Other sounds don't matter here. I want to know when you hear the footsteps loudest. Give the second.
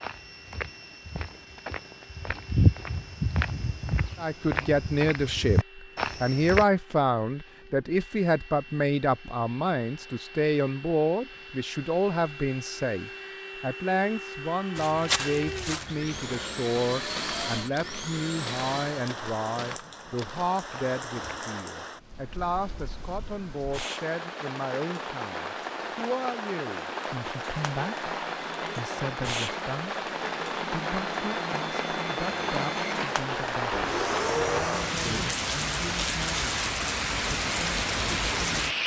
3 s.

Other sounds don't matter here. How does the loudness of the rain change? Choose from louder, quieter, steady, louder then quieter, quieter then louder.
louder.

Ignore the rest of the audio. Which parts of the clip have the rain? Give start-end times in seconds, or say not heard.
18.4-38.8.